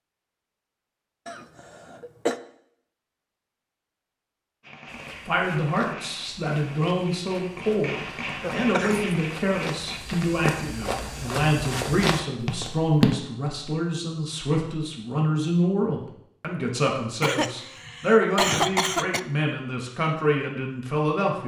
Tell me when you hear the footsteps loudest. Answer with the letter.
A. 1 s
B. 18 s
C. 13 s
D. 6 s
C.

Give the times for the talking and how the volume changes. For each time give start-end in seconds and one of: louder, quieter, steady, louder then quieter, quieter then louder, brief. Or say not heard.
5.2-21.4 steady.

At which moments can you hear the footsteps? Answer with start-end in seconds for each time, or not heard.
4.8-13.2.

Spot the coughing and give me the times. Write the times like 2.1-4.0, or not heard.
1.2-2.4, 8.4-9.2, 17.2-19.2.